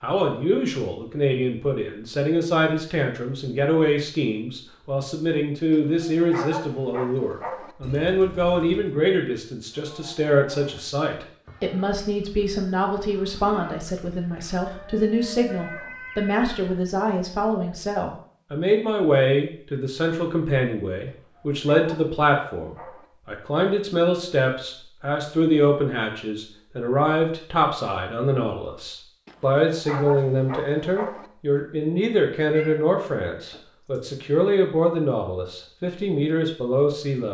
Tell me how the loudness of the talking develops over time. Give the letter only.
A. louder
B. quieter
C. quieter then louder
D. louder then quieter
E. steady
E.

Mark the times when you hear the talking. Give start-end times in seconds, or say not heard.
0.0-37.2.